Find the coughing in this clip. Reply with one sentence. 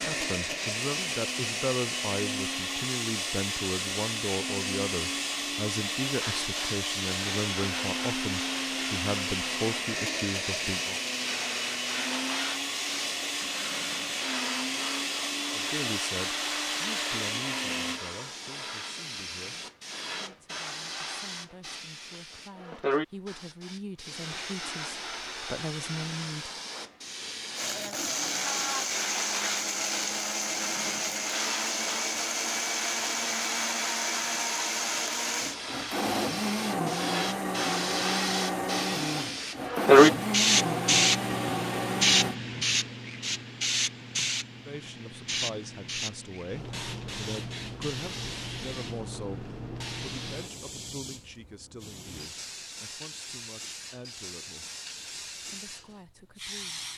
The coughing can't be heard in this clip.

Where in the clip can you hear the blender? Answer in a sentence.
The blender can be heard from 0.0 to 18.0 s and from 27.5 to 42.4 s.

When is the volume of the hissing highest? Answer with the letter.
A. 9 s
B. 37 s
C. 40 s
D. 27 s
C.